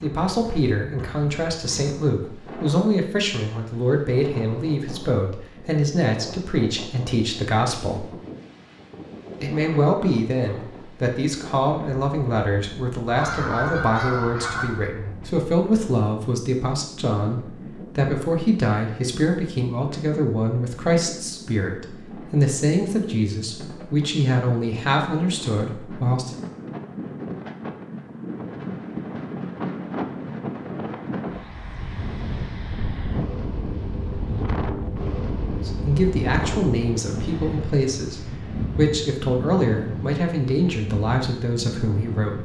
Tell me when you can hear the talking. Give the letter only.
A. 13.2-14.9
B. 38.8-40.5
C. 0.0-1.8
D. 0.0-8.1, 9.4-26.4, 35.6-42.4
D.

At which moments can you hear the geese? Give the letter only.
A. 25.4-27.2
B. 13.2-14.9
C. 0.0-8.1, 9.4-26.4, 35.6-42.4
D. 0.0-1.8
B.